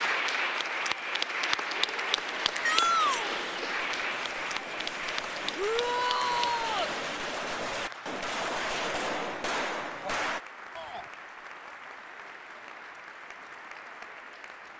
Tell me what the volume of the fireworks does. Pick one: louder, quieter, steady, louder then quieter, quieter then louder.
louder.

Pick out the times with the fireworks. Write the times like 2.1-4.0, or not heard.
1.9-10.4.